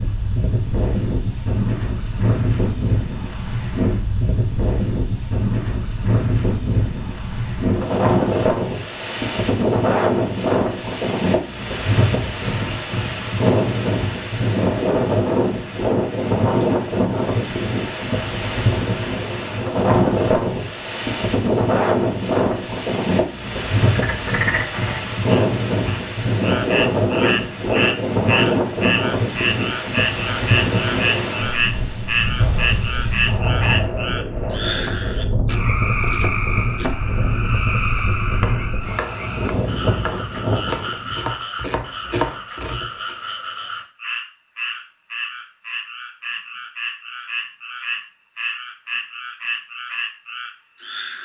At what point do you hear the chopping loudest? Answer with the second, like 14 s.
42 s.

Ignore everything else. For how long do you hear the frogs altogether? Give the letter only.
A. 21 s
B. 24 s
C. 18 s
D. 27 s
D.